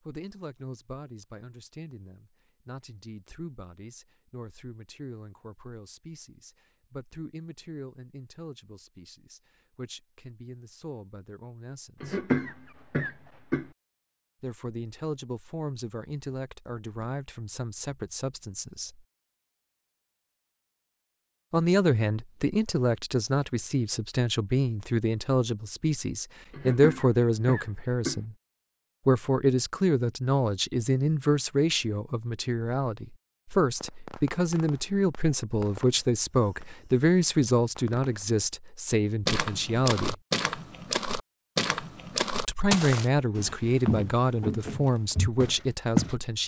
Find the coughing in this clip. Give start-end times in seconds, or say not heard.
12.0-13.7, 26.5-28.2.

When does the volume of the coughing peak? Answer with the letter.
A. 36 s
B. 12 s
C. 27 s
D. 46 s
B.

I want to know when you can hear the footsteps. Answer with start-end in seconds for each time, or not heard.
39.2-46.1.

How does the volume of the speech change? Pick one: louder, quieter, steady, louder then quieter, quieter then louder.
louder.